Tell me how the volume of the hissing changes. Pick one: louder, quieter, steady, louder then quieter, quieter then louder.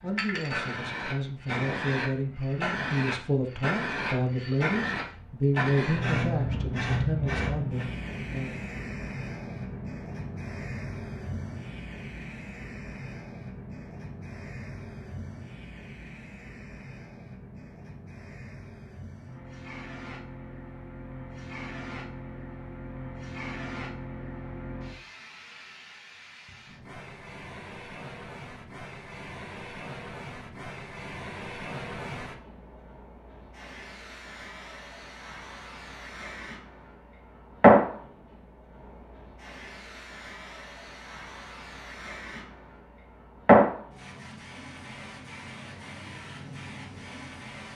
quieter then louder.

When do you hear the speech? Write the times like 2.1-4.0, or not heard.
0.0-8.7.